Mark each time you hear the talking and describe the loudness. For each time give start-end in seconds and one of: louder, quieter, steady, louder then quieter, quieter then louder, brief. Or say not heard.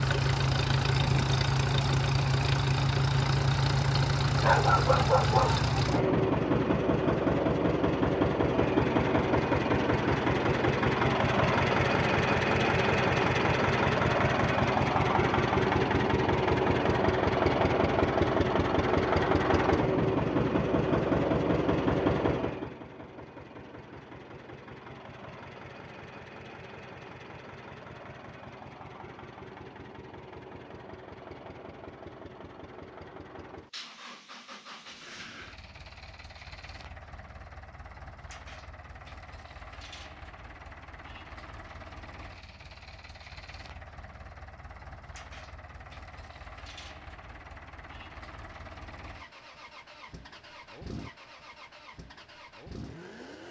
not heard.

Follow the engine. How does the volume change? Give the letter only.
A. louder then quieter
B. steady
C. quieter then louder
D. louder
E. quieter
E.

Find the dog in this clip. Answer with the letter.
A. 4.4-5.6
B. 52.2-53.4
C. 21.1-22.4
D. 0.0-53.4
A.